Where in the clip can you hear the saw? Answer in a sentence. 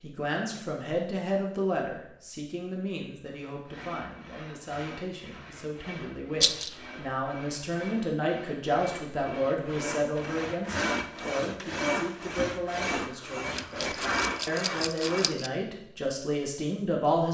The saw can be heard from 3.5 to 15.3 s.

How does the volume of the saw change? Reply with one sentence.
The loudness of the saw goes up.